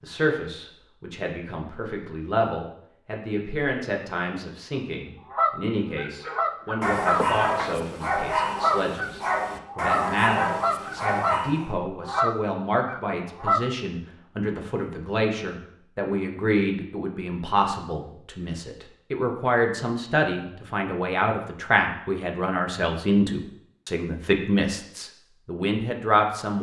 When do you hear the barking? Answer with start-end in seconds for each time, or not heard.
6.2-11.7.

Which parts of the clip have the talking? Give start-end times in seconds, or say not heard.
0.0-26.5.